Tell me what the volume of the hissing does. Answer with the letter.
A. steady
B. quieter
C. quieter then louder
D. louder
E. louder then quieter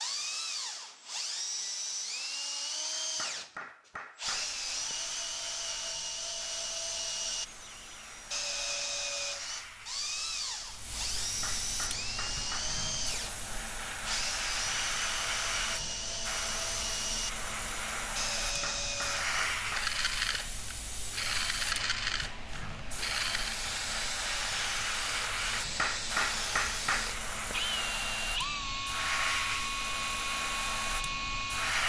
D.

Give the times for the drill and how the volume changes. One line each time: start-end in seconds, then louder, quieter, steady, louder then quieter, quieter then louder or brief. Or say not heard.
0.0-31.8 steady.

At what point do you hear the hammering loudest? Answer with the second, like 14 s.
26 s.